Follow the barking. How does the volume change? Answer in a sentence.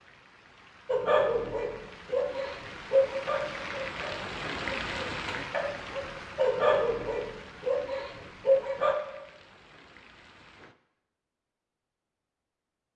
The volume of the barking goes down, then up.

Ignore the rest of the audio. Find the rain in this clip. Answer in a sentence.
The rain can be heard from 0.0 to 10.8 s.